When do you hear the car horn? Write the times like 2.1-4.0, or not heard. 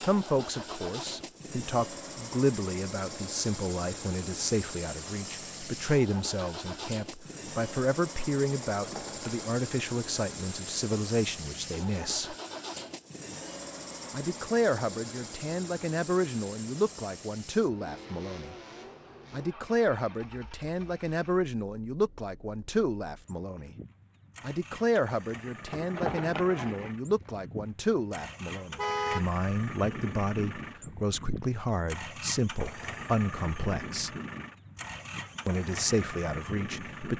28.8-29.2.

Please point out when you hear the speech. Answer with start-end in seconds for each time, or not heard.
0.1-12.3, 14.1-18.6, 19.3-23.8, 24.4-34.1, 35.5-37.1.